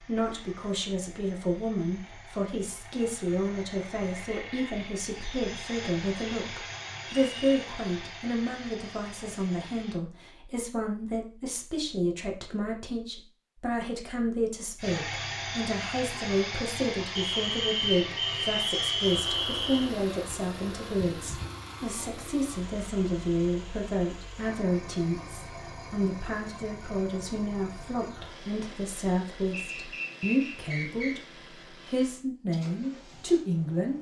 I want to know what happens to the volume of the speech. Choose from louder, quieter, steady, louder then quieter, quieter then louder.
steady.